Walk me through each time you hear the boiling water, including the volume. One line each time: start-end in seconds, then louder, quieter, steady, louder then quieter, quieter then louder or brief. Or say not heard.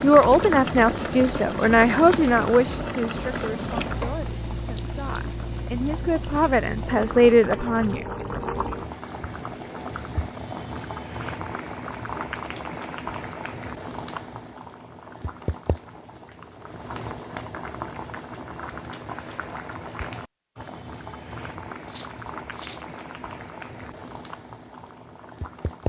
0.0-25.8 quieter.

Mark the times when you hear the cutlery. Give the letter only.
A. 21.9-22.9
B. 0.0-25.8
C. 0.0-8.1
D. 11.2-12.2
A.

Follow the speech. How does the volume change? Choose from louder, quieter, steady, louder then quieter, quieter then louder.
quieter then louder.